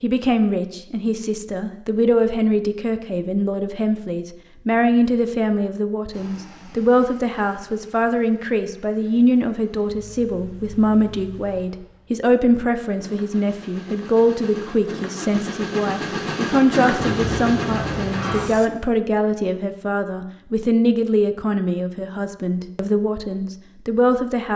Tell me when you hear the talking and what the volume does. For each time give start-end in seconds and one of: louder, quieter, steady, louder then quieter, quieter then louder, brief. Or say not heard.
0.0-24.5 steady.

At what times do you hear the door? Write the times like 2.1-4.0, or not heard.
16.9-18.5.